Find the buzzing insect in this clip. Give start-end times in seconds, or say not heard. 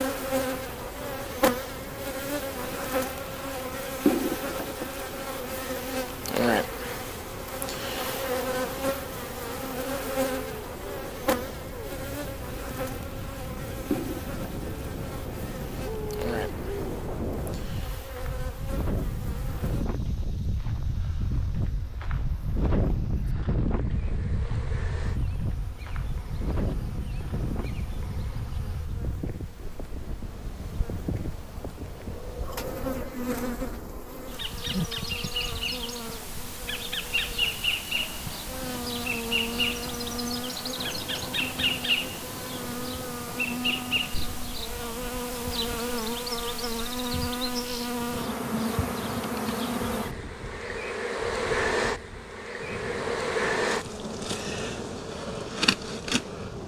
0.0-56.6.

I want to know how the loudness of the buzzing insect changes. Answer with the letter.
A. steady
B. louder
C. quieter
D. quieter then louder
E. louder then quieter
D.